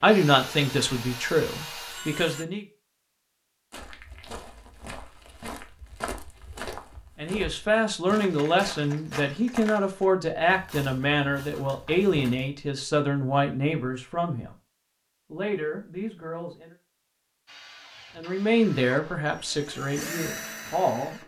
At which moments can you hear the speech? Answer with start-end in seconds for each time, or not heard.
0.0-2.6, 7.2-14.5, 15.3-16.7, 18.1-21.2.